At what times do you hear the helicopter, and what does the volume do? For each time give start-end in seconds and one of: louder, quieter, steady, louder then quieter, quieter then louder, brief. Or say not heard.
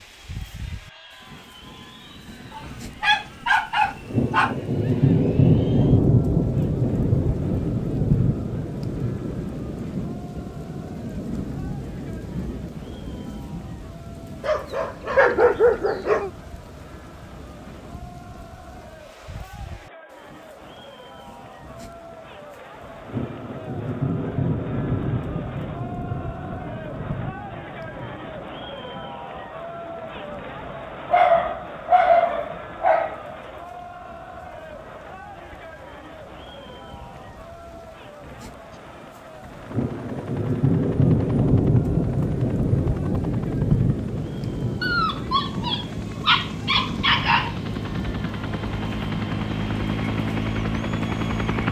38.7-51.6 louder.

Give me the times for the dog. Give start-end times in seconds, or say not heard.
2.5-4.5, 14.4-16.3, 31.1-33.4, 44.8-47.5.